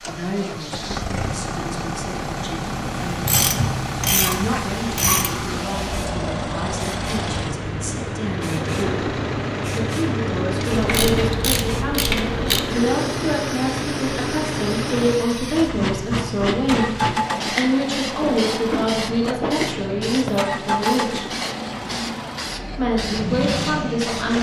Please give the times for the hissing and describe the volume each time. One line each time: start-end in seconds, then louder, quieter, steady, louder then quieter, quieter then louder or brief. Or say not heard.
0.0-24.3 louder.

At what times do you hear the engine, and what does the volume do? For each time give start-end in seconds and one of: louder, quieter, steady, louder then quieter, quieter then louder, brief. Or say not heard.
0.0-24.3 steady.